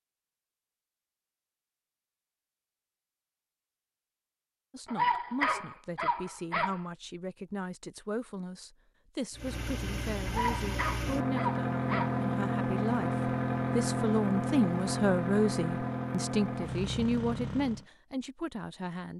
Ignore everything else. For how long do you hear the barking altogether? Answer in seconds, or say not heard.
4 s.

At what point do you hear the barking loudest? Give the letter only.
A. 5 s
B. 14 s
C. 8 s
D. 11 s
A.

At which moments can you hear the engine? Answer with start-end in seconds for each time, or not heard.
9.3-17.9.